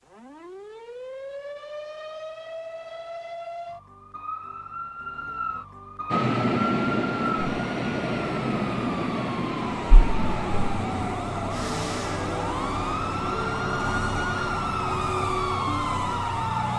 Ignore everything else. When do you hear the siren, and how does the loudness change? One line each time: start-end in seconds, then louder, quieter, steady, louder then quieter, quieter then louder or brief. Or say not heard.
0.1-16.7 louder.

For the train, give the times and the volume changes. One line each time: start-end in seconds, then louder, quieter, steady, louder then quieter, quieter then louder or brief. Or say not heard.
6.1-15.2 quieter.